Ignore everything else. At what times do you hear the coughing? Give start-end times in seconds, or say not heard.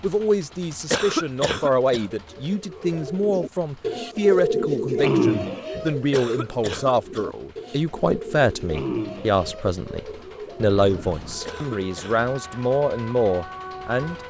0.9-2.0, 6.1-7.2, 11.4-12.2.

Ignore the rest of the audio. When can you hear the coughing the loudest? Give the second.
1 s.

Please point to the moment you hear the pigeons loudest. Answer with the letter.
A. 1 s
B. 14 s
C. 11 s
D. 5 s
D.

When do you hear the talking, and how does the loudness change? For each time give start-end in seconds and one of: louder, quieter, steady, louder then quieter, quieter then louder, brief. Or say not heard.
0.0-14.2 steady.